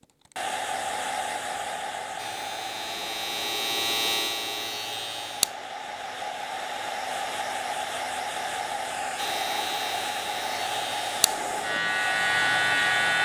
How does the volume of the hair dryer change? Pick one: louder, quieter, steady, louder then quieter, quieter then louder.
quieter then louder.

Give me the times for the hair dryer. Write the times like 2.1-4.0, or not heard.
0.0-13.2.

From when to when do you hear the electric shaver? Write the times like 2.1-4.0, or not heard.
2.1-5.7, 9.2-13.2.